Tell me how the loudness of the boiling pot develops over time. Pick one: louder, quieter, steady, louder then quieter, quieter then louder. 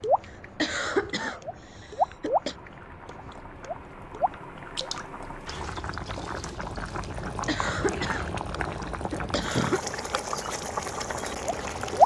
louder.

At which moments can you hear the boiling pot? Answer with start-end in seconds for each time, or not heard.
0.0-12.0.